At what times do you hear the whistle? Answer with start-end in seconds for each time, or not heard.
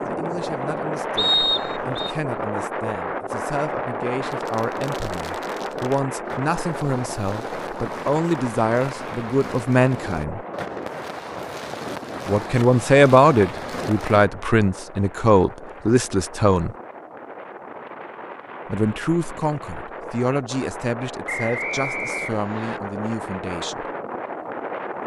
1.1-2.1, 21.2-22.8.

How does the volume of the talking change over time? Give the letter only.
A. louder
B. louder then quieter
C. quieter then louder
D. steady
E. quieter
B.